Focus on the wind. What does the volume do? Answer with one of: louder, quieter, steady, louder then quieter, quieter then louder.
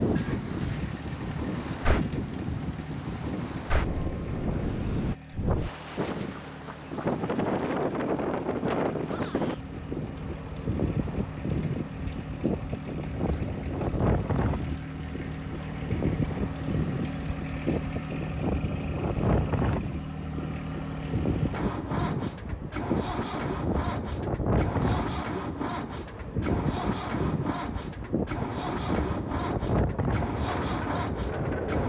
steady.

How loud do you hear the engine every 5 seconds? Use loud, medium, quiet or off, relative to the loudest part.
medium, medium, medium, loud, loud, loud, loud.